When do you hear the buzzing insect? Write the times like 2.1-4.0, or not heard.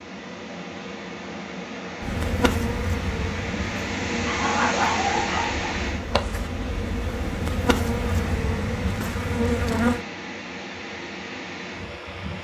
2.0-10.1.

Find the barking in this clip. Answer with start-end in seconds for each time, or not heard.
4.2-5.8.